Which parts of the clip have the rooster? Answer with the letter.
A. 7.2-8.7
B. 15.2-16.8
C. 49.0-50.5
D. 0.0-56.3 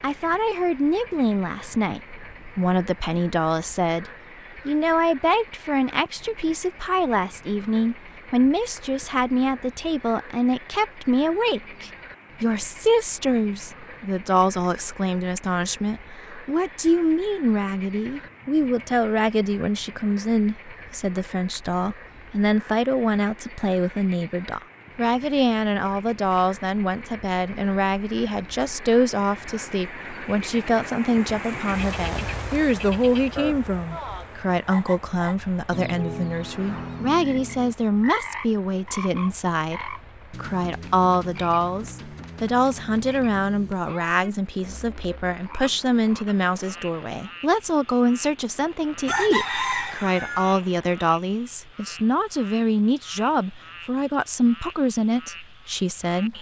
C.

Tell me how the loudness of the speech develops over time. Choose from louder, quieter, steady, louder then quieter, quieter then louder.
steady.